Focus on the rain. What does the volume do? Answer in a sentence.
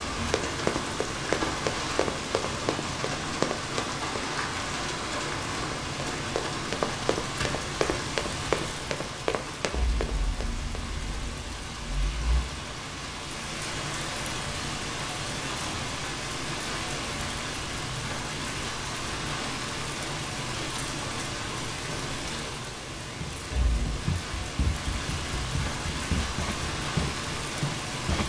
The volume of the rain stays about the same.